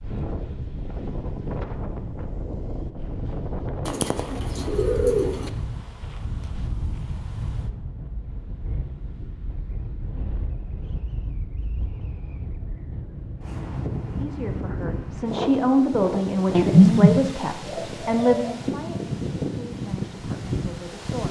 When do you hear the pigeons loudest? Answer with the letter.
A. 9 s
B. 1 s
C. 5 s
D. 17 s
D.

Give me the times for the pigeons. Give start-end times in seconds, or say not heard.
3.9-5.5, 16.6-18.5.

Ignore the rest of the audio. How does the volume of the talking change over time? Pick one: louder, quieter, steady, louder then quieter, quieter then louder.
quieter.